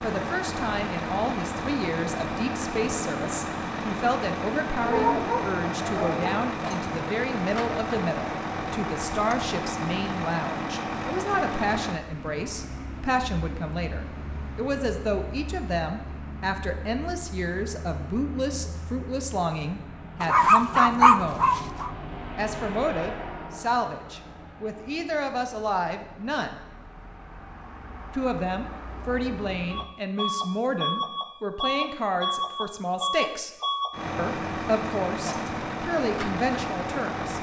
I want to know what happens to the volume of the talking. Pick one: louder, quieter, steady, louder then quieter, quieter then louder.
steady.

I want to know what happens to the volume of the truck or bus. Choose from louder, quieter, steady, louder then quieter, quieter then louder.
quieter then louder.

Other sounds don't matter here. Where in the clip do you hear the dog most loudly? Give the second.
21 s.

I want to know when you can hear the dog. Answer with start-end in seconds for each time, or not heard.
4.8-6.5, 20.2-21.9.